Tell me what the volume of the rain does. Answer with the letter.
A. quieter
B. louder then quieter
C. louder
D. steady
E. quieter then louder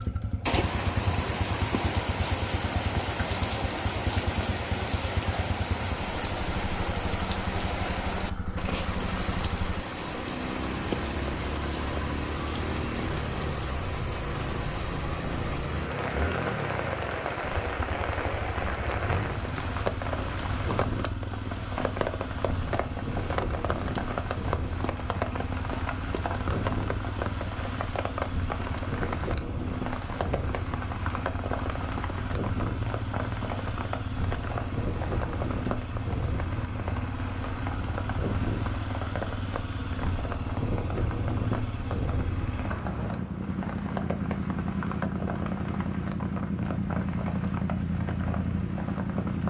A.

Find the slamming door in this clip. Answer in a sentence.
You can't hear the slamming door here.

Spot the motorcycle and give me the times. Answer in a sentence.
The motorcycle can be heard from 0.0 to 49.4 s.